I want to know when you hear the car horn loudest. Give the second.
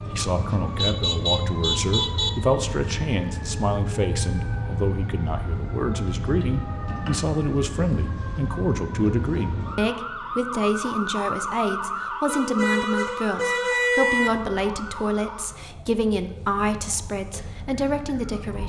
14 s.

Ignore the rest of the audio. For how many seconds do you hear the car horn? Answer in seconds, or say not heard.
4 s.